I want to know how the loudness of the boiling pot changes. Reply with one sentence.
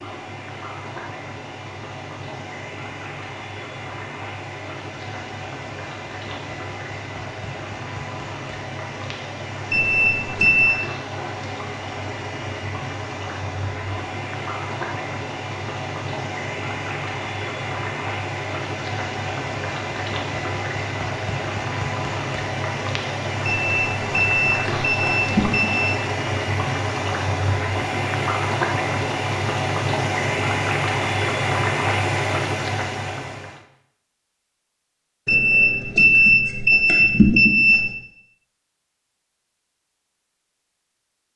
The loudness of the boiling pot goes up.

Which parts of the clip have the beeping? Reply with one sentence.
You can hear the beeping from 9.7 to 10.7 s, from 23.4 to 25.9 s and from 35.2 to 37.8 s.